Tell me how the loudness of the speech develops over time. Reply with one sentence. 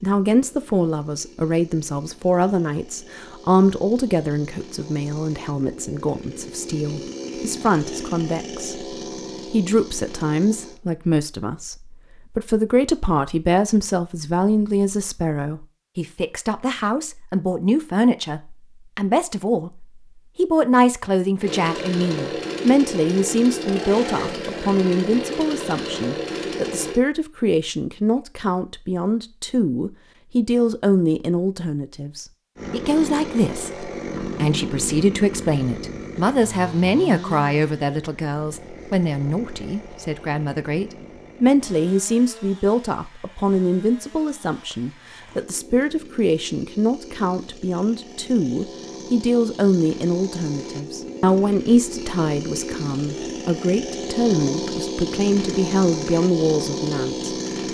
The volume of the speech stays about the same.